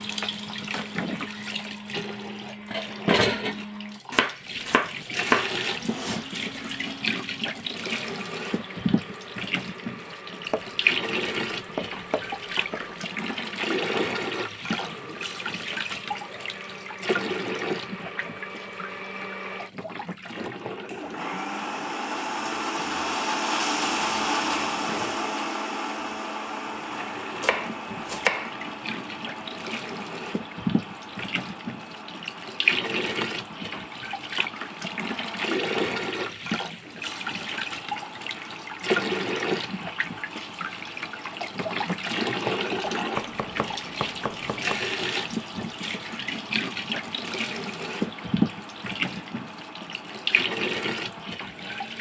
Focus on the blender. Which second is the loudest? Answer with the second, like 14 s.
24 s.